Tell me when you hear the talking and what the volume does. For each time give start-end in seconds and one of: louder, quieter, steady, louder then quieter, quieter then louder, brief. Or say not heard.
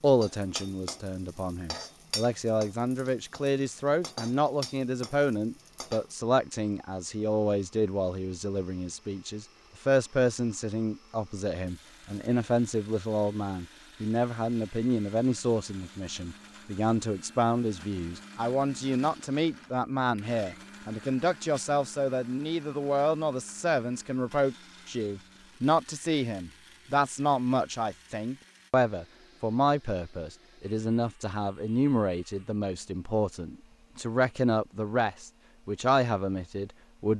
0.0-37.1 steady.